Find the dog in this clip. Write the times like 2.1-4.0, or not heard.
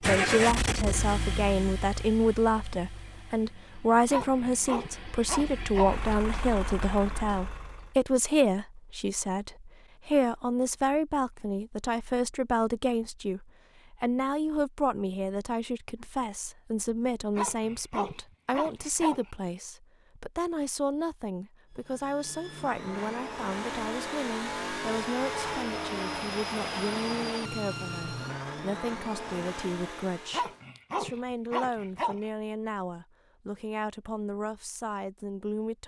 4.1-6.0, 17.4-19.2, 30.3-32.2.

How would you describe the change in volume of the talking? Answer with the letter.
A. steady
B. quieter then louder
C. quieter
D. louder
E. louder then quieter
C.